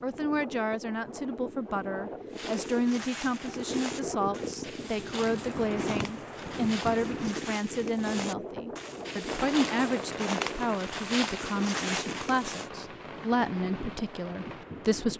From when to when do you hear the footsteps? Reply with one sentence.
You can hear the footsteps from 2.3 to 12.7 s.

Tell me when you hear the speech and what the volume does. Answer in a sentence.
The speech can be heard from 0.0 to 15.1 s, at a steady volume.